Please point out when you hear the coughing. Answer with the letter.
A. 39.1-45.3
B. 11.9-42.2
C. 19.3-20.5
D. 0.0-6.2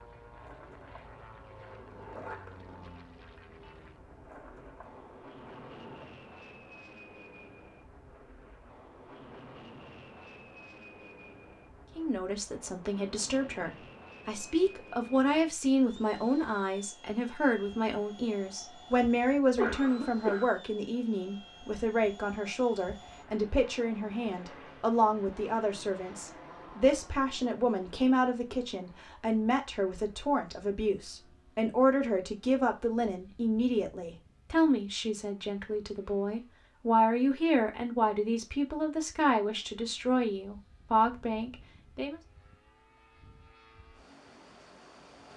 C.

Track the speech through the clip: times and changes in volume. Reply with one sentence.
You can hear the speech from 11.9 to 42.2 s, at a steady volume.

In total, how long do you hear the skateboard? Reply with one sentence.
The skateboard can be heard for 6 seconds in total.